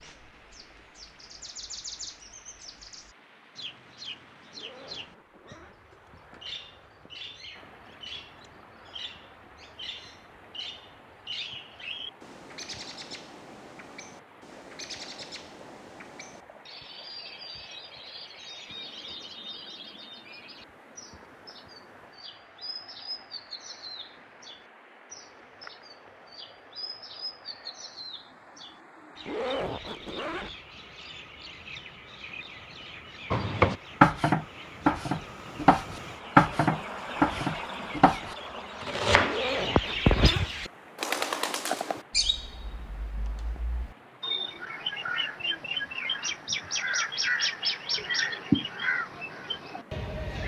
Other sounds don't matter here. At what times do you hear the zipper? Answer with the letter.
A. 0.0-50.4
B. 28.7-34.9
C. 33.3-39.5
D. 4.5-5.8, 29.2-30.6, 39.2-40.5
D.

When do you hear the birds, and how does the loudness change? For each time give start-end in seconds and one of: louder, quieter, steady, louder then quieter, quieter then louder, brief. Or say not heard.
0.0-50.4 louder.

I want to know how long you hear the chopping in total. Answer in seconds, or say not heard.
6 s.